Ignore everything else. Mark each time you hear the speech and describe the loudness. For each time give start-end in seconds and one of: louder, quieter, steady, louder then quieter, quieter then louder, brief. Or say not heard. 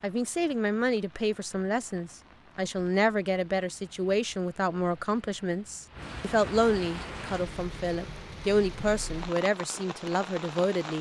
0.0-10.9 steady.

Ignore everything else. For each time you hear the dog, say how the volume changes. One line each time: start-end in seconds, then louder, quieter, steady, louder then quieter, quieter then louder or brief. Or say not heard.
not heard.